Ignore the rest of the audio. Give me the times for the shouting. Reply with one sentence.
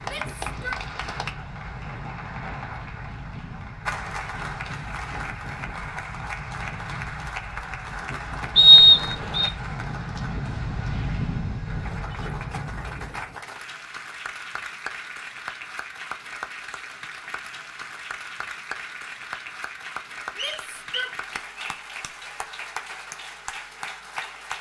The shouting can be heard from 0.0 to 0.8 s and from 20.4 to 21.2 s.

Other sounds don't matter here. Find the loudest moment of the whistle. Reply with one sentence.
The volume of the whistle peaks at 9 seconds.